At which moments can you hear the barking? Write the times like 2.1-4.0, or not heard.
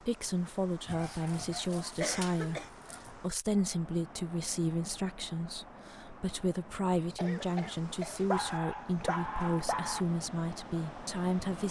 0.8-3.1, 8.2-10.1.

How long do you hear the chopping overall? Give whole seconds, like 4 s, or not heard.
not heard.